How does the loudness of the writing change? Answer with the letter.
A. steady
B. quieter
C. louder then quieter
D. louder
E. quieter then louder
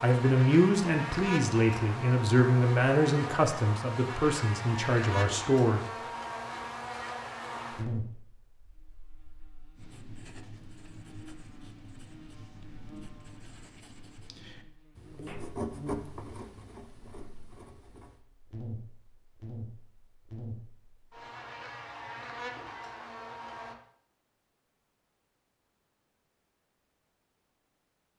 C.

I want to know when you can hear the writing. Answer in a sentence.
You can hear the writing from 9.8 to 18.2 s.